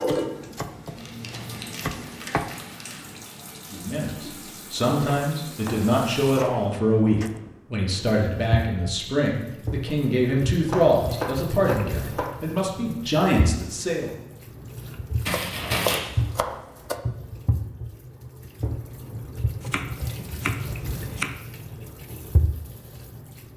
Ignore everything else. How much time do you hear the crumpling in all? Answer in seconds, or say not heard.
3 s.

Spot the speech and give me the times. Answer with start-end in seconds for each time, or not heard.
3.7-14.2.